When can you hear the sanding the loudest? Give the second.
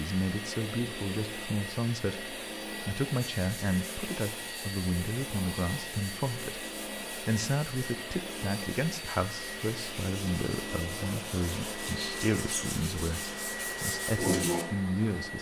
14 s.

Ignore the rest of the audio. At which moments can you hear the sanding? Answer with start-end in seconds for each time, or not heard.
3.2-14.7.